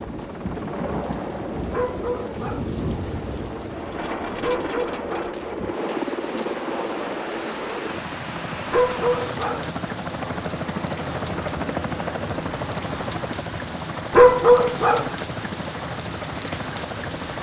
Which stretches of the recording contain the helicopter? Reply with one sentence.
You can hear the helicopter from 0.0 to 17.3 s.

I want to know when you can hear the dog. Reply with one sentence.
The dog can be heard from 1.7 to 2.7 s, from 4.4 to 5.3 s, from 8.7 to 9.7 s and from 14.1 to 15.1 s.